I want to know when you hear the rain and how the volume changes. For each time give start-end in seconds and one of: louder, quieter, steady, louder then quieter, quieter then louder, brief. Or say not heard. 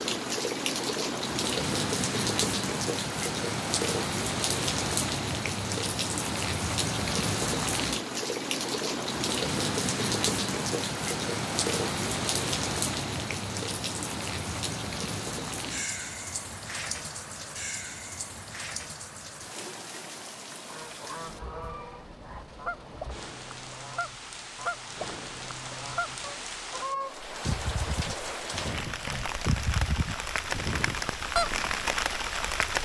0.0-32.8 quieter then louder.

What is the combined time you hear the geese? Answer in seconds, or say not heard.
11 s.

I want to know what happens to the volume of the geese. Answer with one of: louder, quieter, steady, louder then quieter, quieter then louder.
louder.